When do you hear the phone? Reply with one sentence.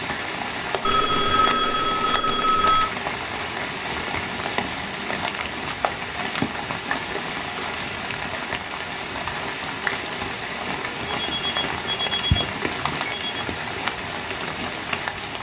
You can hear the phone from 0.8 to 2.9 s and from 11.1 to 13.4 s.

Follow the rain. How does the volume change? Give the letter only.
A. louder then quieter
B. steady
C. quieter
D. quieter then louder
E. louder
B.